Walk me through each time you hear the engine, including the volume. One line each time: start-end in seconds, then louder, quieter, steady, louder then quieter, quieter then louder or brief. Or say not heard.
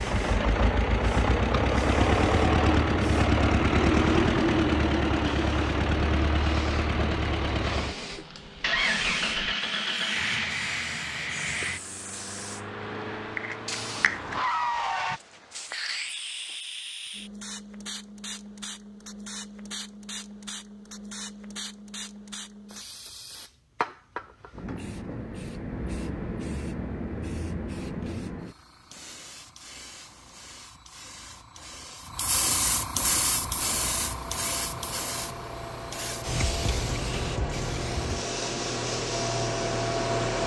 0.0-15.2 quieter
33.3-40.4 louder.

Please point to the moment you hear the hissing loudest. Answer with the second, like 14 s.
33 s.